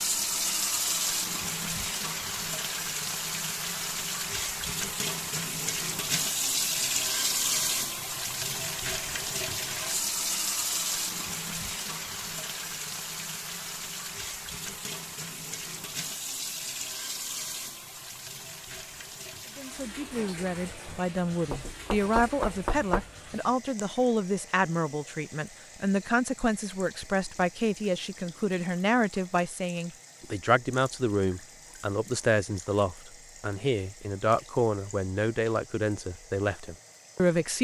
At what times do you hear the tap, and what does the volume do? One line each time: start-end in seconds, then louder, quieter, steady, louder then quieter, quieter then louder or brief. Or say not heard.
0.0-37.5 quieter.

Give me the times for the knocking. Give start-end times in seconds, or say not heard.
21.5-23.1.